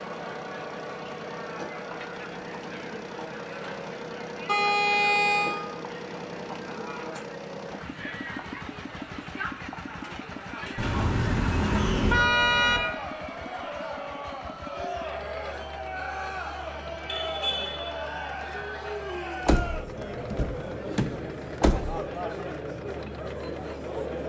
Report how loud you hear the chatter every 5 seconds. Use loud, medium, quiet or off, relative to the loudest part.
medium, medium, loud, loud, loud.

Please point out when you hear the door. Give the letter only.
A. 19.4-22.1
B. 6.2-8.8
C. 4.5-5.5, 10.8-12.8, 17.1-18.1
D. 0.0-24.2
A.